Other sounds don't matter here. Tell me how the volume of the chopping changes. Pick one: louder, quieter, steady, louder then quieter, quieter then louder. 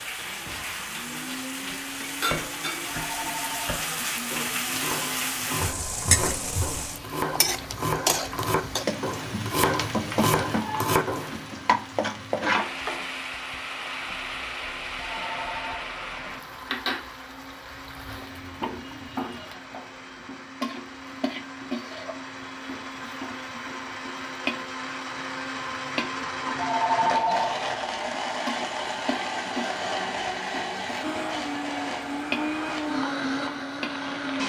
louder.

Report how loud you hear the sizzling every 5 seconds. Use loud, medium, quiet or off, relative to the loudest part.
loud, loud, loud, medium, medium, medium, medium.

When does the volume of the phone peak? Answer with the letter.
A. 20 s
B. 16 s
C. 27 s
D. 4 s
C.